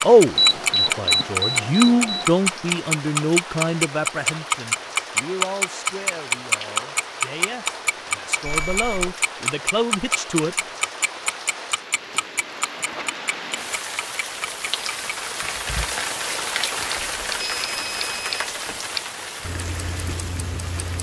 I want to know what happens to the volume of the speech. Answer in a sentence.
The volume of the speech goes down, then up.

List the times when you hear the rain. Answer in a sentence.
The rain can be heard from 0.0 to 20.9 s.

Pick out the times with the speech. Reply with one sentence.
You can hear the speech from 0.0 to 10.6 s.